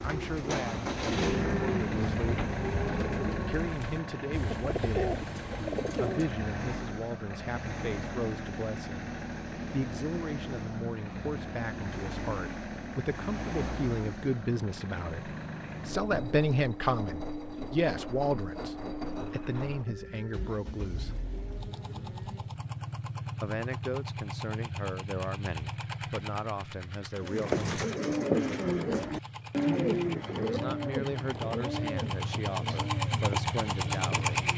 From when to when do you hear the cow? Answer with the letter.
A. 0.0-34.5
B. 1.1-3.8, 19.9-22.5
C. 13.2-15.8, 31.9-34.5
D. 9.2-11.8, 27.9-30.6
B.